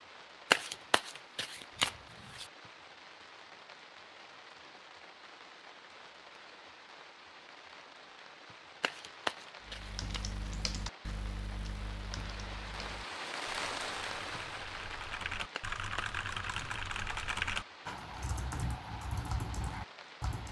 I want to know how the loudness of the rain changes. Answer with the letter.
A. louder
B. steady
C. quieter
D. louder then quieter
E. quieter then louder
D.